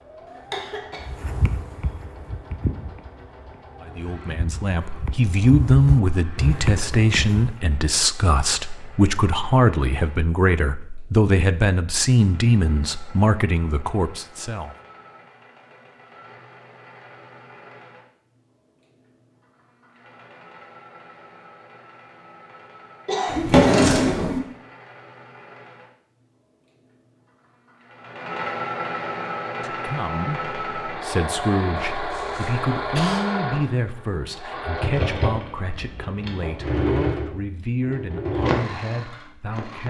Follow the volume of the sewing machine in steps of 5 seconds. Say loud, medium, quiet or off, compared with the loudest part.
quiet, quiet, quiet, quiet, quiet, medium, loud, loud.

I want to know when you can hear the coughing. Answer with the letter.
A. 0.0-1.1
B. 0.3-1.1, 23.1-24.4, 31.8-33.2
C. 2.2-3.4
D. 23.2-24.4
B.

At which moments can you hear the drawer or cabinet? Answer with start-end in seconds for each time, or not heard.
23.2-24.4.